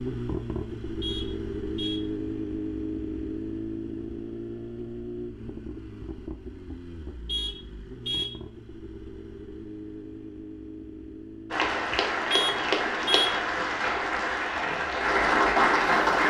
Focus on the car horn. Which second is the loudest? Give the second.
13 s.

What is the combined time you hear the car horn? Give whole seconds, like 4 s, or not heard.
3 s.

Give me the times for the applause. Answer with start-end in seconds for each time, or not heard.
11.5-16.2.